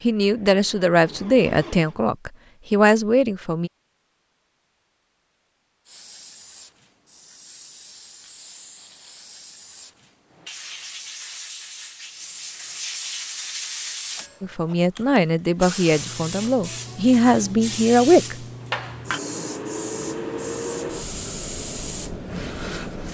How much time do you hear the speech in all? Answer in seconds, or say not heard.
8 s.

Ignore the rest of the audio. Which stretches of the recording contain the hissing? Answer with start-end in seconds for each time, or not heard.
5.8-23.0.